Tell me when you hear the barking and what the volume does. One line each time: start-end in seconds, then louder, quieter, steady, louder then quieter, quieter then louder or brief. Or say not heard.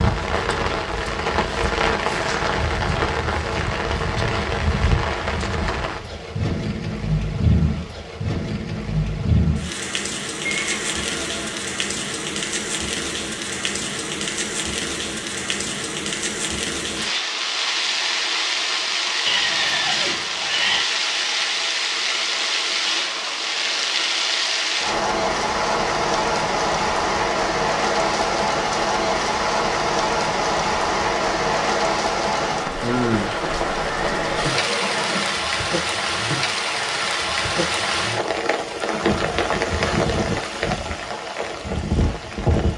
not heard.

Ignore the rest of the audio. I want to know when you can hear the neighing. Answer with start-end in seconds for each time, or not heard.
10.4-11.7, 19.2-20.9, 33.8-35.5.